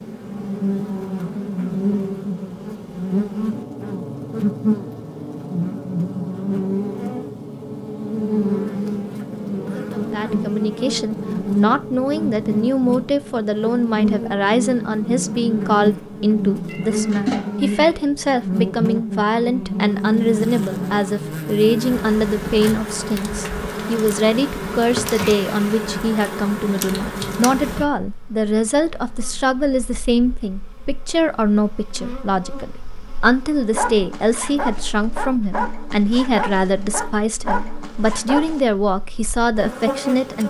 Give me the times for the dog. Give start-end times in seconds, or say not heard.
33.7-38.6.